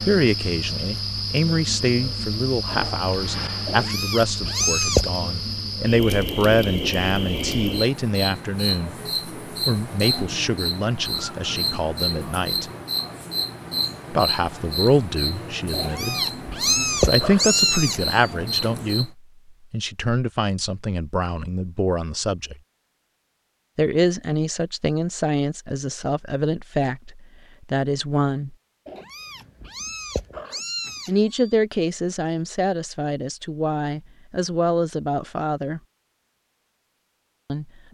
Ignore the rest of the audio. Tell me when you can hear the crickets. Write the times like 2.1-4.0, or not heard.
0.0-19.1.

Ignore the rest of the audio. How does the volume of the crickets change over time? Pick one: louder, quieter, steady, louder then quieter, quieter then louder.
steady.